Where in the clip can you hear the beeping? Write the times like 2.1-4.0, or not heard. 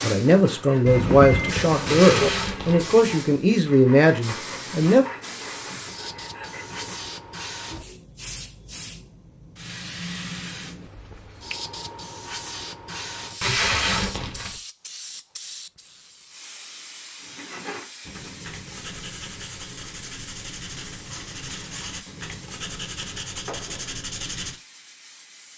0.8-2.3.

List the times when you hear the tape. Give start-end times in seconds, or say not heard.
1.9-3.0, 13.4-14.6.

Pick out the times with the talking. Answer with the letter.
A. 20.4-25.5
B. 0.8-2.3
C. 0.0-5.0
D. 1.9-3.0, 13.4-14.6
C.